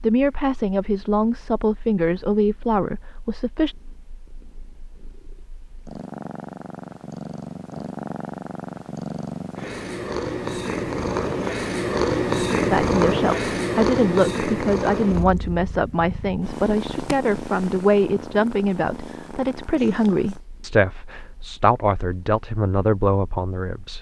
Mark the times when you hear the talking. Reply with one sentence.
You can hear the talking from 0.0 to 3.8 s and from 12.7 to 23.9 s.